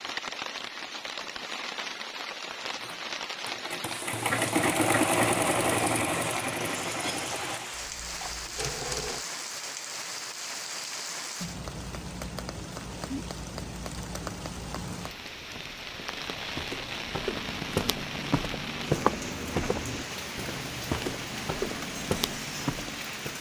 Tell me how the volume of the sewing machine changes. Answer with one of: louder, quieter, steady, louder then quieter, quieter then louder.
louder then quieter.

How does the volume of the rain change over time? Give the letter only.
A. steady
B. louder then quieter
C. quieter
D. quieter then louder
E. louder
A.